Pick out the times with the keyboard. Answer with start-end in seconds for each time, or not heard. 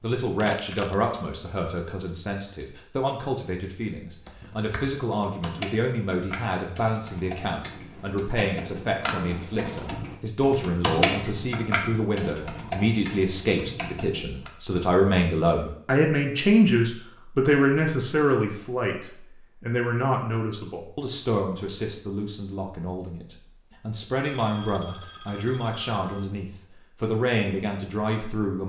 4.2-14.5.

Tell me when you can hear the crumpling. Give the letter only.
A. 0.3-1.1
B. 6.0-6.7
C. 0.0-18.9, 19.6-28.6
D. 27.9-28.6
A.